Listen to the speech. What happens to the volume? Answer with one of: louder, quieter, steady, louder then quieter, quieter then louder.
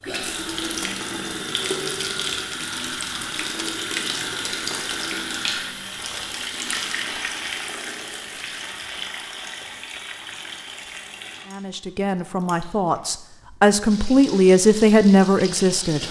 louder.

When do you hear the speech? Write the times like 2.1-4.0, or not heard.
11.4-16.0.